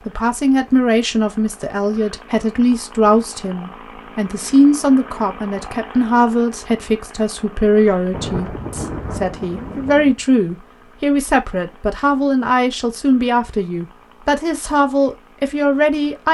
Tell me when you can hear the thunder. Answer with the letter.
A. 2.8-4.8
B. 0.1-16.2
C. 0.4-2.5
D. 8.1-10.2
D.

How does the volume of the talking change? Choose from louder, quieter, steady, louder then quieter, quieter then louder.
steady.